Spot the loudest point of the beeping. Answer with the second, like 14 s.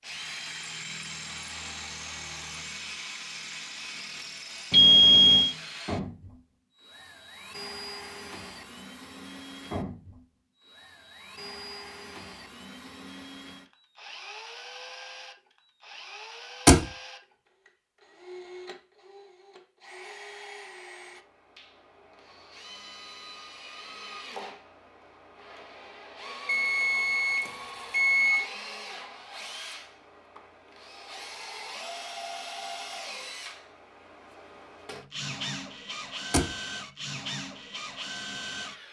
5 s.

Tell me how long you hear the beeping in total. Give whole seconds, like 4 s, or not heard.
3 s.